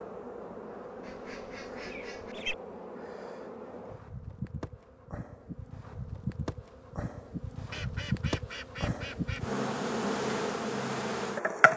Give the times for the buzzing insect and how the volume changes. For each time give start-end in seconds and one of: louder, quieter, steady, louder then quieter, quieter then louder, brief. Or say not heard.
0.0-11.7 louder.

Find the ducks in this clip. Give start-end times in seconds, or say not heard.
1.0-2.5, 7.7-9.4.